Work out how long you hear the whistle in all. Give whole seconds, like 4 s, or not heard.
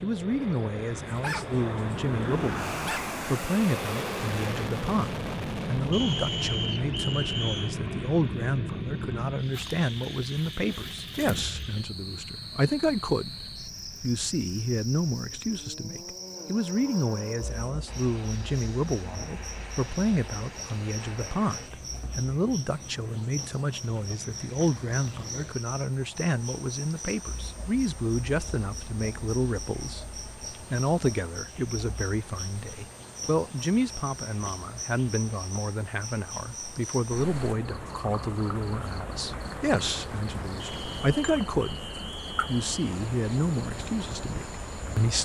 4 s.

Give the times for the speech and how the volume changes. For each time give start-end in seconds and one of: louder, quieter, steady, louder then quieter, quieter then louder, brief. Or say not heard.
0.0-13.3 steady
14.0-41.8 steady
42.5-45.1 brief.